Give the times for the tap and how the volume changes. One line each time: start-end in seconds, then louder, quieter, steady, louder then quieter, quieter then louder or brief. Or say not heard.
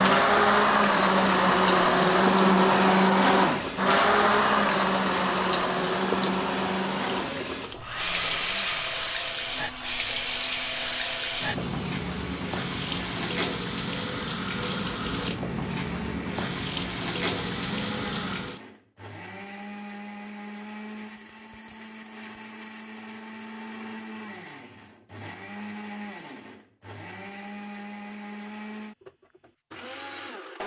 0.0-18.6 steady.